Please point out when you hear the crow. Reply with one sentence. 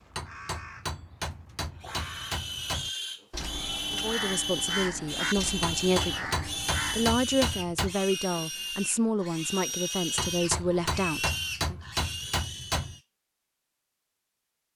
The crow can be heard from 0.0 to 7.2 s.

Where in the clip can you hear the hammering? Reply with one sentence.
You can hear the hammering from 0.1 to 2.9 s, from 5.6 to 8.0 s and from 10.2 to 13.0 s.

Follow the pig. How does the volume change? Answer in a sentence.
The volume of the pig stays about the same.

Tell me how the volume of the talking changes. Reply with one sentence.
The volume of the talking stays about the same.